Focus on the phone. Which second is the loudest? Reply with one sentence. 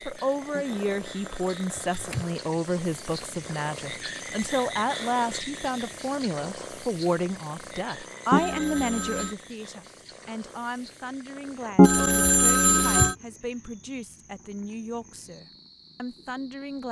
The loudest moment of the phone is at 12 seconds.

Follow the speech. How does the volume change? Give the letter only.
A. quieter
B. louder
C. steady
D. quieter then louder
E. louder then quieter
A.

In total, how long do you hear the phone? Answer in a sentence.
The phone can be heard for 4 seconds in total.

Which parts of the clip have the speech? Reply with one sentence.
You can hear the speech from 0.1 to 16.8 s.